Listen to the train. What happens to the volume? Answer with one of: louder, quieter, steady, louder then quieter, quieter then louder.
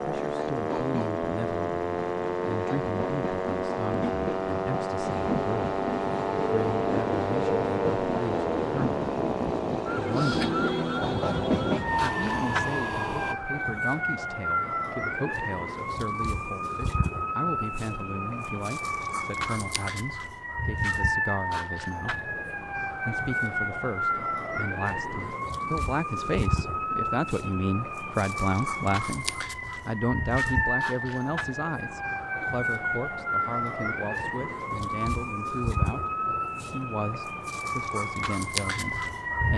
louder.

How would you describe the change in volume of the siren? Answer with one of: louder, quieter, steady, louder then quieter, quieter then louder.
steady.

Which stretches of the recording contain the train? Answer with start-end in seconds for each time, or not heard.
0.0-13.3.